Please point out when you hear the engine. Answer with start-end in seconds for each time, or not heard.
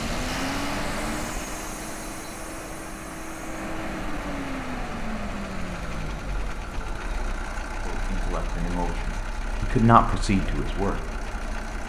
0.0-11.8.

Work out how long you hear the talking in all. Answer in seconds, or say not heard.
3 s.